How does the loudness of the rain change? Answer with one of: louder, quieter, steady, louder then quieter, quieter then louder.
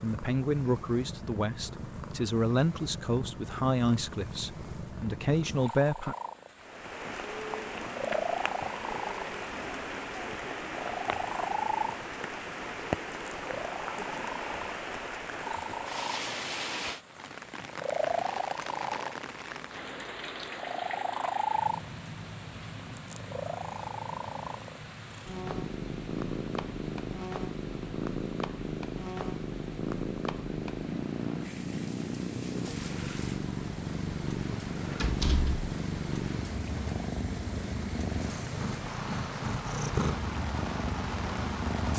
quieter then louder.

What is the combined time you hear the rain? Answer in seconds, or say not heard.
35 s.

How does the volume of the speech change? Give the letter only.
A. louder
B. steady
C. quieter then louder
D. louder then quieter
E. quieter
B.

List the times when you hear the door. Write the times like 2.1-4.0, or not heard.
35.0-35.6.